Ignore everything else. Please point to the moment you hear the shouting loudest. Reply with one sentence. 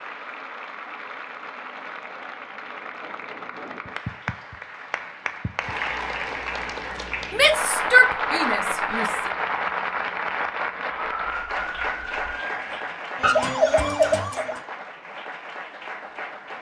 The loudest moment of the shouting is at 8 seconds.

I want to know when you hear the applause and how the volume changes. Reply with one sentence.
The applause can be heard from 0.0 to 16.5 s, getting louder then quieter.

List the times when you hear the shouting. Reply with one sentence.
The shouting can be heard from 7.3 to 9.2 s.